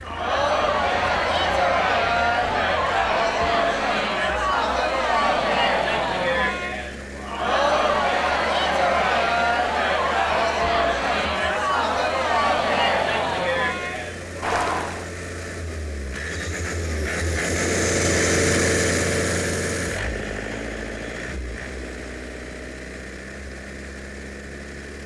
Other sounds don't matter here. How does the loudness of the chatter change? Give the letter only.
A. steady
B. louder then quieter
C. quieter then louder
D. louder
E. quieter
A.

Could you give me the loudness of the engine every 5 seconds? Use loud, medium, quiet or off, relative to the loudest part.
quiet, quiet, quiet, loud, medium.